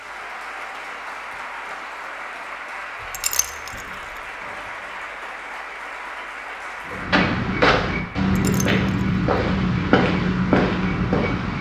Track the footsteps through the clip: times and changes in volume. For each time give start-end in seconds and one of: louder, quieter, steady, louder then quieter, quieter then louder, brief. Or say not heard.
6.8-11.5 steady.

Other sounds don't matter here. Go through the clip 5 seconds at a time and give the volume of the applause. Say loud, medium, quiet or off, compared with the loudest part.
loud, loud, off.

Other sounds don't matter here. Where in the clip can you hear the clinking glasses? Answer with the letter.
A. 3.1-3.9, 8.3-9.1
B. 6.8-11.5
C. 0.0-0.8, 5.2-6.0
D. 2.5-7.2
A.